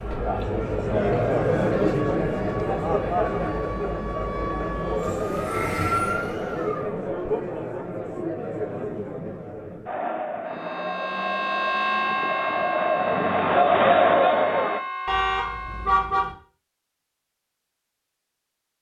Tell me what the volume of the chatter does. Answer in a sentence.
The loudness of the chatter goes down, then up.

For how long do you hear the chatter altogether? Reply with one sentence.
You can hear the chatter for 15 seconds altogether.